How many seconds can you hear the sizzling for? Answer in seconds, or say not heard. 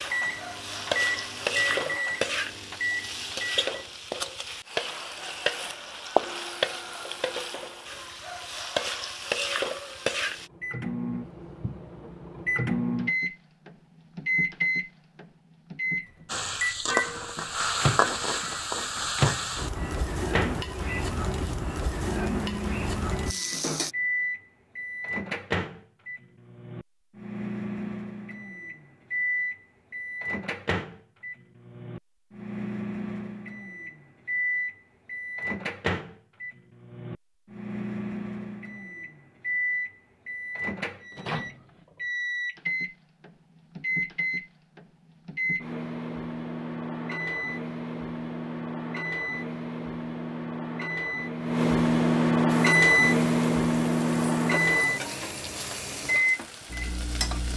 23 s.